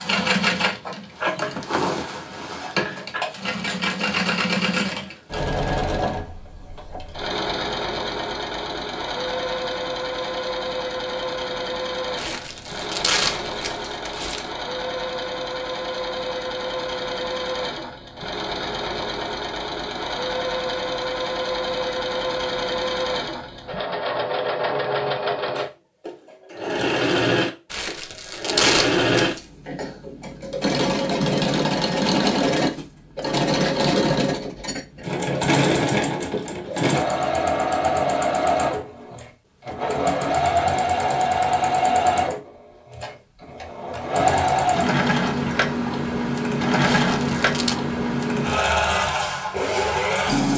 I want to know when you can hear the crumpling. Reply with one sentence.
The crumpling can be heard from 12.2 to 14.5 s, from 27.7 to 29.4 s and from 46.8 to 47.8 s.